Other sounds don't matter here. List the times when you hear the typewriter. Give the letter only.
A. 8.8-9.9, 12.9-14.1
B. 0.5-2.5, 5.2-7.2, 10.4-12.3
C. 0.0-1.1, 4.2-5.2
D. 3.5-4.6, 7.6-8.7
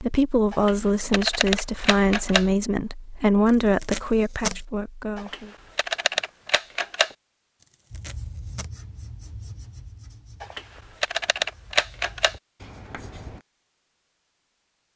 B.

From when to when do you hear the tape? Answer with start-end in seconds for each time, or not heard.
3.5-4.6, 7.6-8.7.